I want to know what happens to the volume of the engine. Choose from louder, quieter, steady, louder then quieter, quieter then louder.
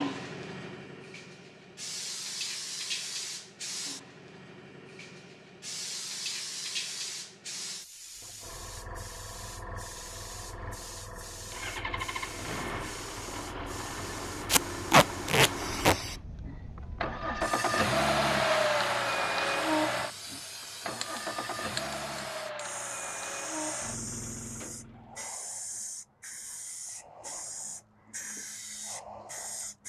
louder then quieter.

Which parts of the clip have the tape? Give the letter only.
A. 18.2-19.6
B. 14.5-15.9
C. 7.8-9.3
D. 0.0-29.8
B.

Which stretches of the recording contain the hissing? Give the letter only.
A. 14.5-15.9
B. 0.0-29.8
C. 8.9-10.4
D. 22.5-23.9
B.